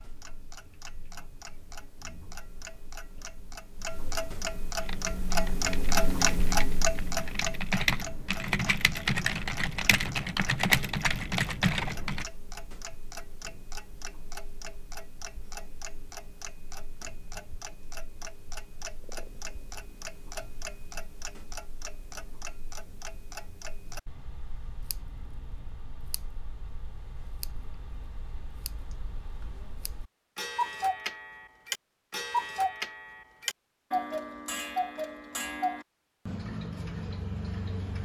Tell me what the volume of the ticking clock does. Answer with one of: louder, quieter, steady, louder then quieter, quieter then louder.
quieter then louder.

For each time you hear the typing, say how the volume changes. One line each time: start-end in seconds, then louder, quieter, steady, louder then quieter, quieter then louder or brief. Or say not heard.
4.8-12.2 louder.